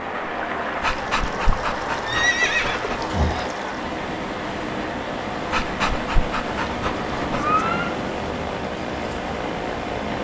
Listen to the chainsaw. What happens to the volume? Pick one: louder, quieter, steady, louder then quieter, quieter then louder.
steady.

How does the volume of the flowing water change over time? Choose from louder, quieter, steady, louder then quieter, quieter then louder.
steady.